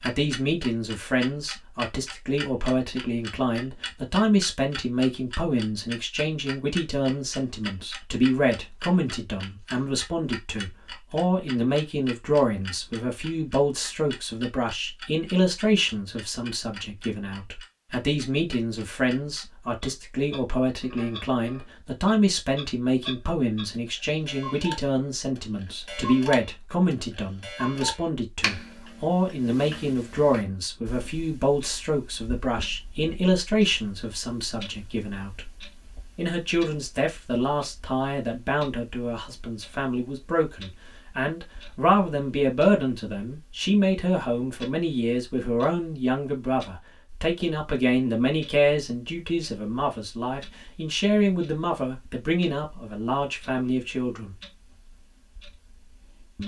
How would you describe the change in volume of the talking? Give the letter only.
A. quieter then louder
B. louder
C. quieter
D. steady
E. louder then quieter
D.